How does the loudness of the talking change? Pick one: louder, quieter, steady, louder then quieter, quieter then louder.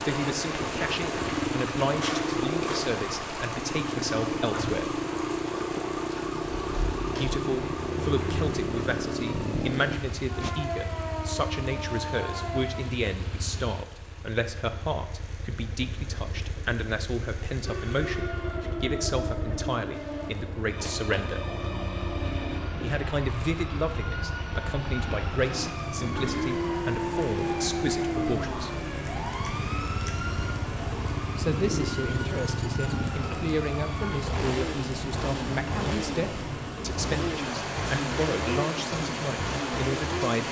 steady.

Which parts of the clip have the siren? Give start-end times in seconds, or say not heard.
0.0-12.8, 17.6-34.2.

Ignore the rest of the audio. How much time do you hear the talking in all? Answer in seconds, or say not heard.
34 s.